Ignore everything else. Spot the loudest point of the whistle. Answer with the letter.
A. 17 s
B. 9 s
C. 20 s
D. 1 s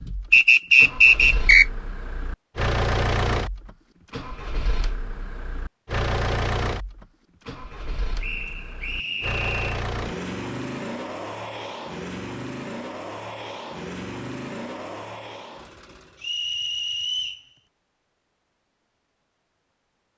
D.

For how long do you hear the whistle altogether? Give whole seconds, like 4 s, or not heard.
4 s.